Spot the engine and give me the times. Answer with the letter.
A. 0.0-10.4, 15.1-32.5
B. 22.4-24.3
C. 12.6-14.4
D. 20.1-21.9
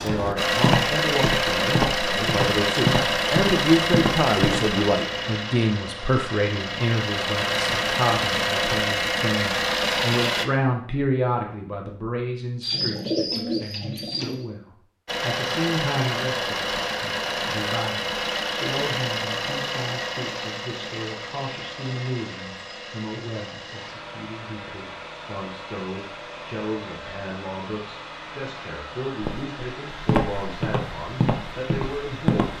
A.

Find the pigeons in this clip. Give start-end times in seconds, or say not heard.
12.6-14.4.